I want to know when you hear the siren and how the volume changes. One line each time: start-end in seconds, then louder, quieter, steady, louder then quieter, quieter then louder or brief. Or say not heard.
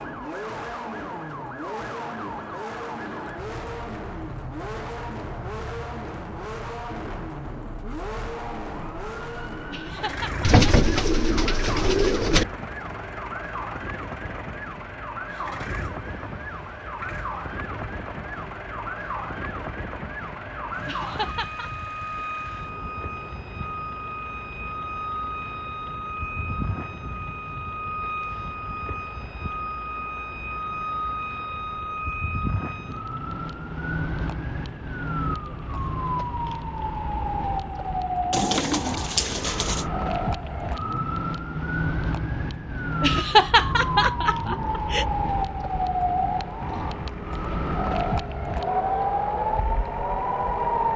0.0-50.9 louder.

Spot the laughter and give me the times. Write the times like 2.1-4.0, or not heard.
9.7-10.9, 20.9-21.7, 43.0-45.0.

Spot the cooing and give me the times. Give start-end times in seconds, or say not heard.
10.4-12.4, 38.3-39.9.